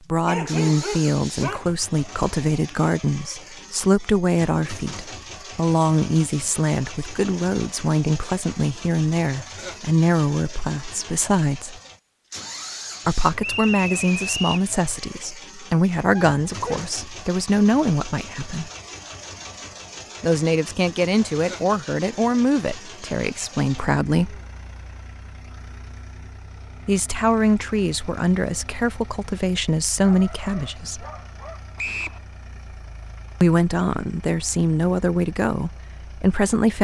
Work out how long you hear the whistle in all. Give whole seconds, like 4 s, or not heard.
2 s.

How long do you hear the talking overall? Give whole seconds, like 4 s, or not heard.
29 s.